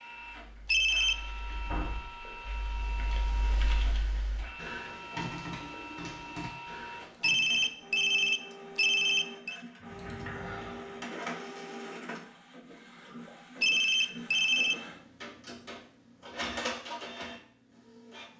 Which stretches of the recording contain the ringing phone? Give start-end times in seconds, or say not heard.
0.7-1.1, 7.2-9.6, 13.6-14.8.